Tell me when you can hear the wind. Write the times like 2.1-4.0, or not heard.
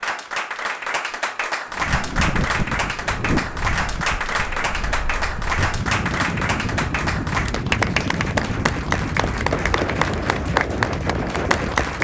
1.7-11.9.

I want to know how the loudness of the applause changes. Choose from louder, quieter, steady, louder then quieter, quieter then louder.
steady.